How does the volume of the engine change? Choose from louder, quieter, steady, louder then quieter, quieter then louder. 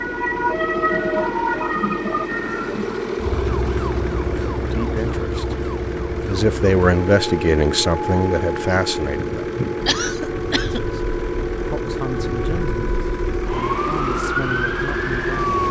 steady.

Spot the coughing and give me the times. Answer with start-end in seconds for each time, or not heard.
9.8-10.8.